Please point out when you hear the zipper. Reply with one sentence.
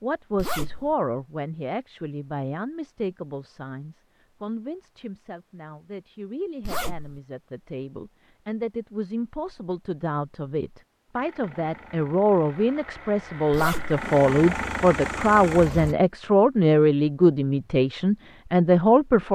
The zipper can be heard from 0.3 to 0.9 s, from 6.6 to 7.2 s and from 13.5 to 14.0 s.